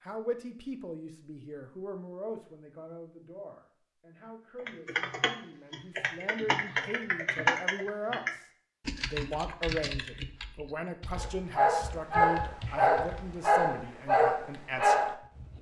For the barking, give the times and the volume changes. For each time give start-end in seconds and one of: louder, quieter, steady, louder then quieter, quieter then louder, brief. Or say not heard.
11.2-15.5 steady.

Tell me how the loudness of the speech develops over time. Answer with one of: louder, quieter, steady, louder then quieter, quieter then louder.
quieter then louder.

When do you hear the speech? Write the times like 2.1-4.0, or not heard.
0.0-8.4, 9.1-15.1.